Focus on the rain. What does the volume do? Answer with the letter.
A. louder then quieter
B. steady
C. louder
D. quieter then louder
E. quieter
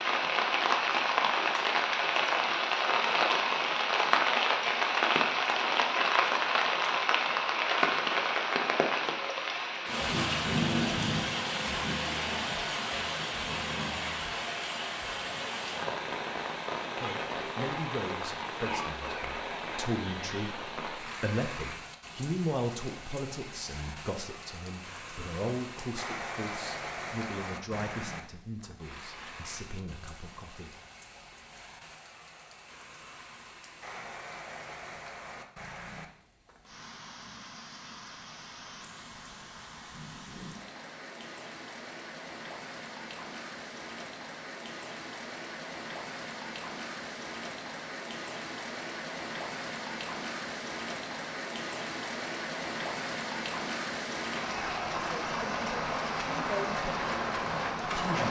D.